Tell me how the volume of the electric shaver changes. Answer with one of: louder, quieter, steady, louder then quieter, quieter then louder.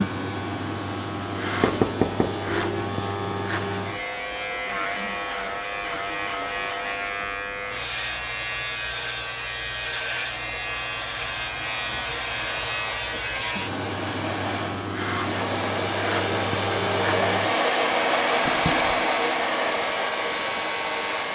steady.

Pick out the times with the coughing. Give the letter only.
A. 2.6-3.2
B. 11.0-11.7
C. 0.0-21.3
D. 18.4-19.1
D.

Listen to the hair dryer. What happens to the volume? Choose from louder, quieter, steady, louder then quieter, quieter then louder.
louder.